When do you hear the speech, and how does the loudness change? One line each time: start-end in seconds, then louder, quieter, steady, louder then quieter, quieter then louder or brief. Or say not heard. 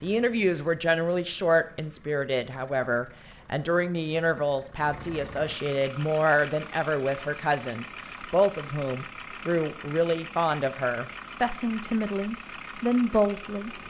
0.0-13.8 steady.